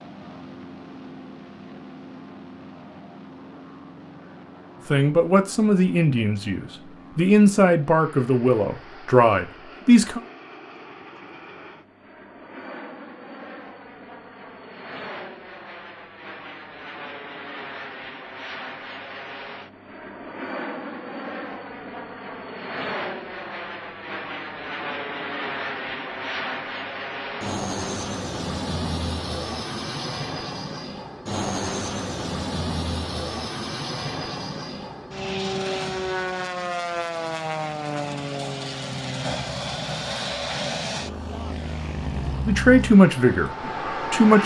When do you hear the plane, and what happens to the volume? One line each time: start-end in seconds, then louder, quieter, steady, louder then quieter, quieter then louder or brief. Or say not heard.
0.0-44.4 louder.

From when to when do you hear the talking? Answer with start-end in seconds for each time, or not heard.
4.8-10.2, 42.5-44.4.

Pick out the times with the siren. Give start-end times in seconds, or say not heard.
not heard.